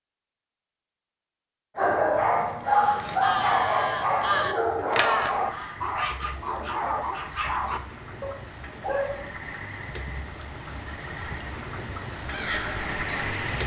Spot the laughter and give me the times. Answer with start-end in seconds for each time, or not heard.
not heard.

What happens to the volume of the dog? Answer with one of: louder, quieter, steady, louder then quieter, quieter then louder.
quieter.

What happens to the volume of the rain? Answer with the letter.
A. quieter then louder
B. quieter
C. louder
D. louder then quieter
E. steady
C.